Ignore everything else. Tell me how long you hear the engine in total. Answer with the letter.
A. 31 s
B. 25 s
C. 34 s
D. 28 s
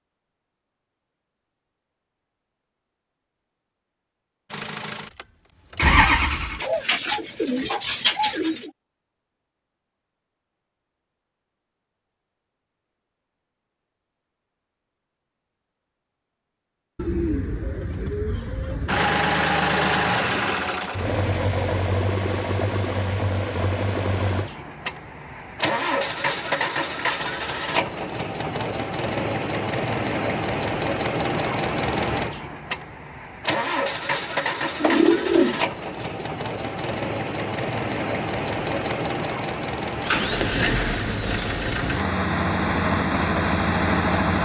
D.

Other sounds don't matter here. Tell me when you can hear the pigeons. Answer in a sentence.
You can hear the pigeons from 6.6 to 8.7 s, from 16.9 to 19.0 s and from 34.6 to 36.2 s.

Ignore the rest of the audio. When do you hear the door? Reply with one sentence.
The door can't be heard in this clip.